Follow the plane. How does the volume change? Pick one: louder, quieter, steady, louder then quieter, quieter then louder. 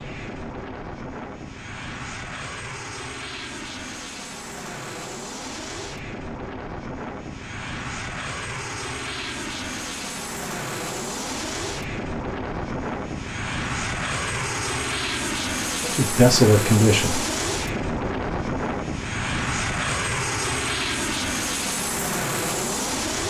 louder.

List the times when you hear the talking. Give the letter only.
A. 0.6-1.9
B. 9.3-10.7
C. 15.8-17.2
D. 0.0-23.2
C.